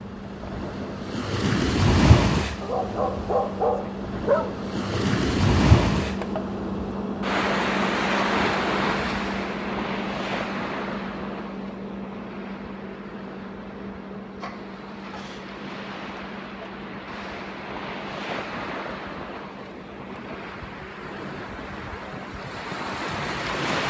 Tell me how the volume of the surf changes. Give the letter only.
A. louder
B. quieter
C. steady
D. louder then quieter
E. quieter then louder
B.